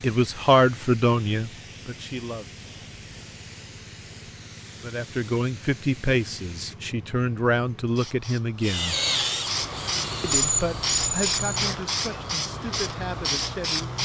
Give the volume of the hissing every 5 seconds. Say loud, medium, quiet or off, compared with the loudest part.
quiet, medium, loud.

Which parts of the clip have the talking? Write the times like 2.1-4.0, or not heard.
0.0-2.6, 4.8-8.9, 10.2-14.0.